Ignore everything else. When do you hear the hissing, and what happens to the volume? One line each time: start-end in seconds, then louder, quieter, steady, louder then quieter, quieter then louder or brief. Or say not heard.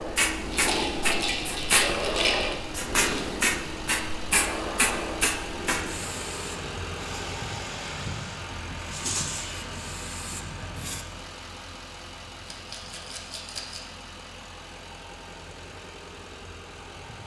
0.0-11.1 quieter.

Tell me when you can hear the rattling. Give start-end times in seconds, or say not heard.
0.5-3.2, 8.9-9.5, 12.4-13.8.